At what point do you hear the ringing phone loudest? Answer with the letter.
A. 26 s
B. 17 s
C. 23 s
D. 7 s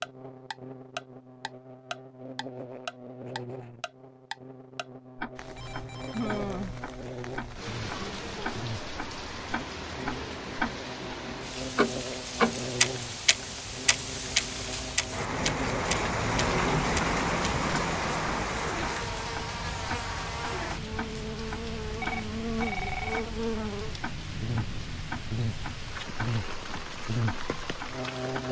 C.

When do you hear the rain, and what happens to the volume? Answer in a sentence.
The rain can be heard from 5.3 to 28.4 s, getting louder then quieter.